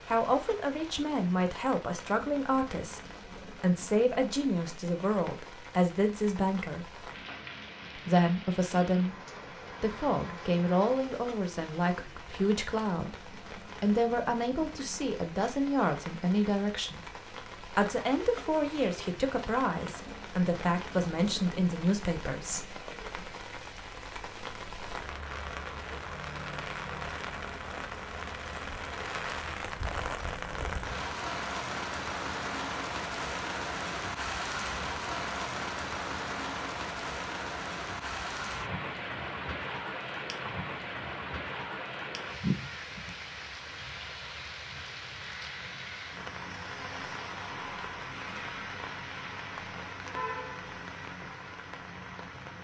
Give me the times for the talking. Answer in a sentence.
You can hear the talking from 0.1 to 7.0 s, from 8.0 to 17.1 s and from 17.8 to 22.7 s.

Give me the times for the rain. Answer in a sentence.
You can hear the rain from 0.0 to 52.6 s.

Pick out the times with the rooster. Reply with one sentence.
The rooster can't be heard in this clip.